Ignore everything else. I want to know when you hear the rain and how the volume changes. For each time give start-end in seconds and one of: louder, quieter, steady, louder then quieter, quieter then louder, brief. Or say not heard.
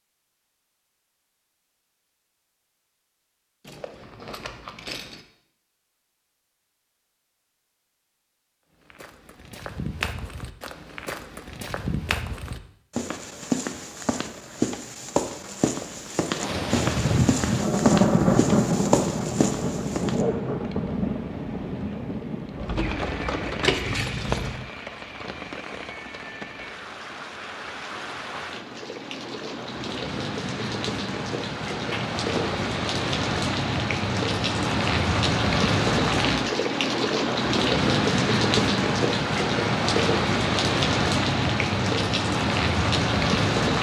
16.4-43.7 quieter then louder.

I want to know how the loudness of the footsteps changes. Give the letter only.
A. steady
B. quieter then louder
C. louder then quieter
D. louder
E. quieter
D.